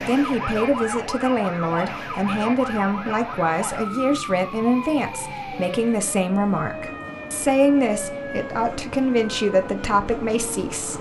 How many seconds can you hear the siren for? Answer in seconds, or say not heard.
11 s.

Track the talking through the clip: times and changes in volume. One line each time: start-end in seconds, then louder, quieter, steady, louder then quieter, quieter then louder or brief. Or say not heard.
0.0-10.9 steady.